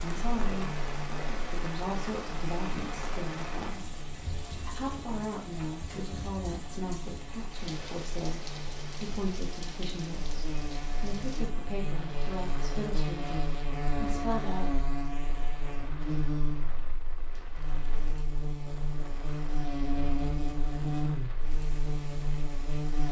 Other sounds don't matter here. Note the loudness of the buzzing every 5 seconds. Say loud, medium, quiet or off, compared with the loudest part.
medium, quiet, loud, loud, loud.